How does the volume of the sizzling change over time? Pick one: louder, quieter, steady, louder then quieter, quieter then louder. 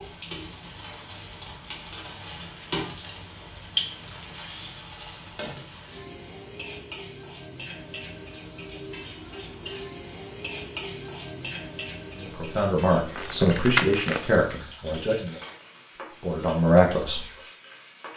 quieter.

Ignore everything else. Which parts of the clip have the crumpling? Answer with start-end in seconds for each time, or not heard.
13.2-14.2.